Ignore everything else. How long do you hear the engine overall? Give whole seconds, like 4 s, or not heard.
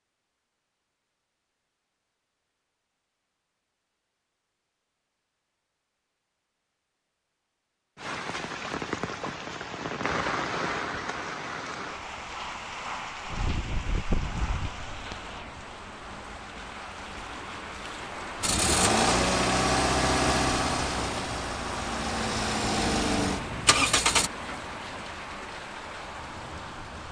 6 s.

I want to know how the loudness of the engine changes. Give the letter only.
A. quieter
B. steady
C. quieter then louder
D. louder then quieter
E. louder
C.